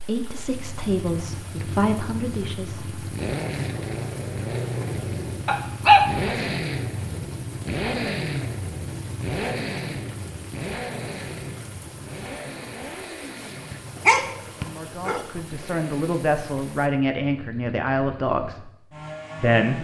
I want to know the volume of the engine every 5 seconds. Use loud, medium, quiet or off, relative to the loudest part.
loud, loud, medium, medium.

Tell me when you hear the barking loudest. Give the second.
6 s.